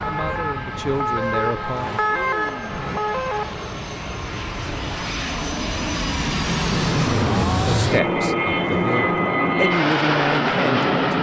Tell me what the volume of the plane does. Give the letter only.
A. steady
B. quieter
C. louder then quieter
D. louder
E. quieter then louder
D.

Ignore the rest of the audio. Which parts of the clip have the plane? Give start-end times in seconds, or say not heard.
0.0-11.1.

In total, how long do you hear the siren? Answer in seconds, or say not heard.
4 s.